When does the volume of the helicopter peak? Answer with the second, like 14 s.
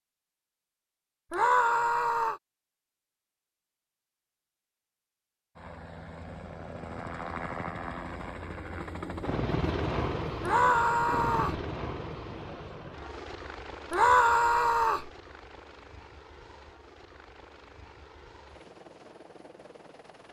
10 s.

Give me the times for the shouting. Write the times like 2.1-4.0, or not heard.
1.3-2.4, 10.4-11.6, 13.9-15.1.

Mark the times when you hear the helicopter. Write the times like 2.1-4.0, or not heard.
5.5-20.2.